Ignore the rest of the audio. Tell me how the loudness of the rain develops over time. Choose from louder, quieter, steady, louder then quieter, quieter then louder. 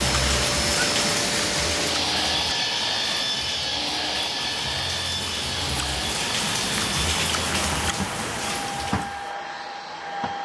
quieter then louder.